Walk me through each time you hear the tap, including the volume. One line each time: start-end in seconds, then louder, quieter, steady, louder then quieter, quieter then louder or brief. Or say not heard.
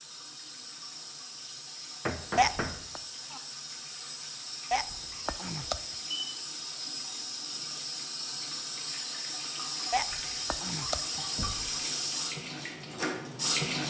0.0-13.8 louder.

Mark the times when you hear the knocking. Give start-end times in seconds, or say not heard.
2.0-3.4, 11.3-11.8.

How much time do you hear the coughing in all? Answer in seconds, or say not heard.
3 s.